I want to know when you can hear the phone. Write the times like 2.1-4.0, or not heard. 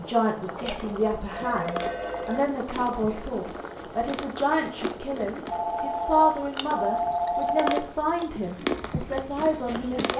0.6-2.4, 5.5-7.8.